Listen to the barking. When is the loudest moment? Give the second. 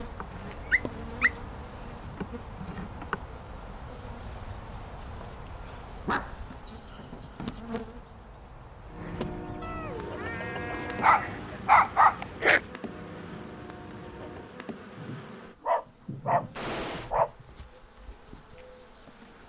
12 s.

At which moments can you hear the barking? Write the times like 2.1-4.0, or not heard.
0.3-1.4, 6.0-7.6, 10.7-12.6, 14.9-17.4.